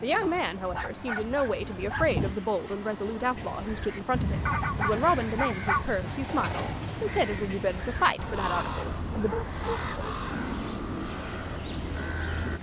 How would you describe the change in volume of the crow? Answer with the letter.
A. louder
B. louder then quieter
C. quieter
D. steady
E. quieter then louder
D.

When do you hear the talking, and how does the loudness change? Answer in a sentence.
The talking can be heard from 0.0 to 9.3 s, at a steady volume.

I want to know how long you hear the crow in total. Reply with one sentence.
The crow can be heard for 9 seconds in total.